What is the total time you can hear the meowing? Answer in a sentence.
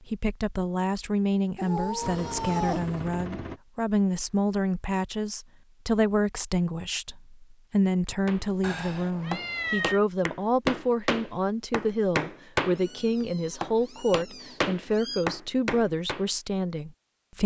You can hear the meowing for 5 seconds altogether.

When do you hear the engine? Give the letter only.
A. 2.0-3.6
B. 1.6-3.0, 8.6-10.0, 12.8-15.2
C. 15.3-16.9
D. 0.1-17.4
A.